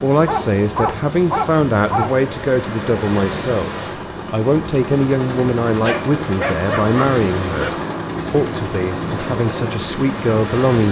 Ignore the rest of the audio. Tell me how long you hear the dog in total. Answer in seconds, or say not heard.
4 s.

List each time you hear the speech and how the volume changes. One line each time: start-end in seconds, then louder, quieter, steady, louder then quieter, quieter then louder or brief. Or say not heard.
0.0-7.7 steady
8.3-10.8 brief.